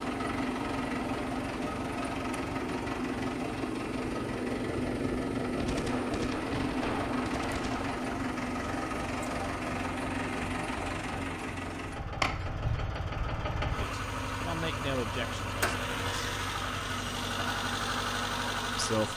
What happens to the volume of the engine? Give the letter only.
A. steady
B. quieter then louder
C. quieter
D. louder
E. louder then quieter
A.